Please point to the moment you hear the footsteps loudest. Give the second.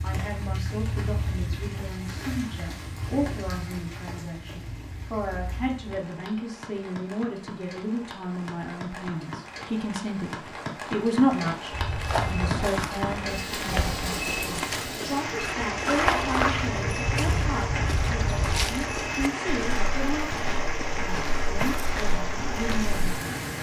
16 s.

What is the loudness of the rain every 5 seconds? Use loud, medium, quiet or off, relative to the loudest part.
medium, medium, loud, loud, loud.